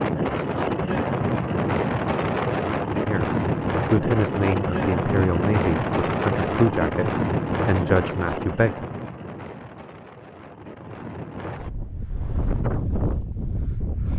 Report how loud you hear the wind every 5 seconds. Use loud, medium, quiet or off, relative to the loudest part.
loud, loud, medium.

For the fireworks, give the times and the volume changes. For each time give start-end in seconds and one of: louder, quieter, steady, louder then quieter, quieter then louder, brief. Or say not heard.
not heard.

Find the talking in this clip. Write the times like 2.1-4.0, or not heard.
3.0-8.9.